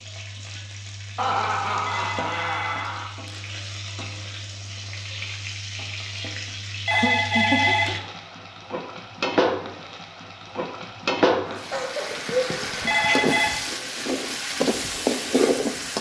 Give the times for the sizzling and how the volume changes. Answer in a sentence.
The sizzling can be heard from 0.0 to 15.9 s, getting louder.